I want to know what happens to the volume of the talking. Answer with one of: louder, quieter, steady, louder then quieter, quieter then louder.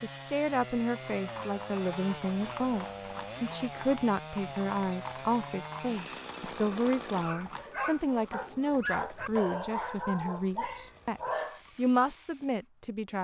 steady.